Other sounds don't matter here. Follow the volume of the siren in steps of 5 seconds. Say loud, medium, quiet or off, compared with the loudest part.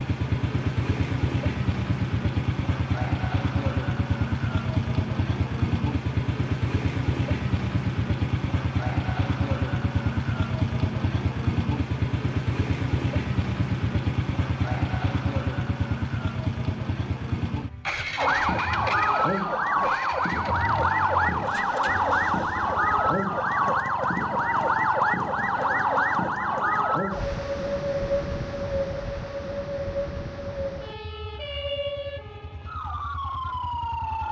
off, off, off, loud, loud, loud, medium.